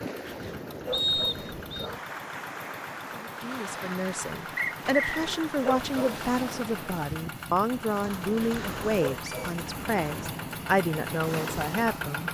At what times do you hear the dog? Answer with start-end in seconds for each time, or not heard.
0.1-2.0, 4.8-6.2, 8.2-9.6.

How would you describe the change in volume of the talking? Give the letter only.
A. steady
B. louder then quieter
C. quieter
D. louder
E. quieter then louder
A.